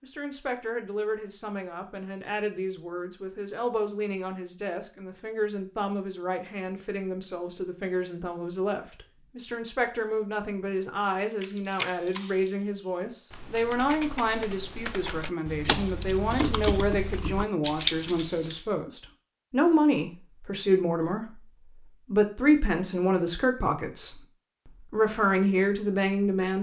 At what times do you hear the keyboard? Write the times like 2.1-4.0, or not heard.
11.4-18.6.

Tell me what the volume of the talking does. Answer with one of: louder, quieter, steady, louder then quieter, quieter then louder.
louder.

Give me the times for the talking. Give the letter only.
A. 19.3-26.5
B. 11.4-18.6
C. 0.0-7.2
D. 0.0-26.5
D.